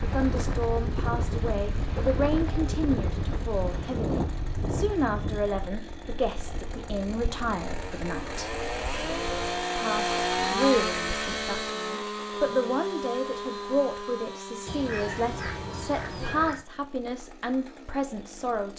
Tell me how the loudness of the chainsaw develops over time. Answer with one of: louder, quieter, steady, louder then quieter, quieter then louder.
louder then quieter.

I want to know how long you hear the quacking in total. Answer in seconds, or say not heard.
2 s.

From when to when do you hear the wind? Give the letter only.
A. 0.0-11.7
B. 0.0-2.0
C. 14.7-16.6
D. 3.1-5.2
A.